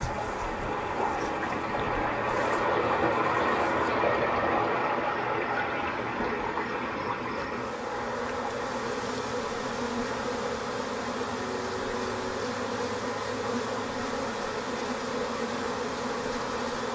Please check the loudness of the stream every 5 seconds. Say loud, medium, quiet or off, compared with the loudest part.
loud, medium, medium, medium.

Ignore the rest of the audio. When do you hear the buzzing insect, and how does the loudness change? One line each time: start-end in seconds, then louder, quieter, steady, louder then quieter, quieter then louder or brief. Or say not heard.
0.0-16.8 louder.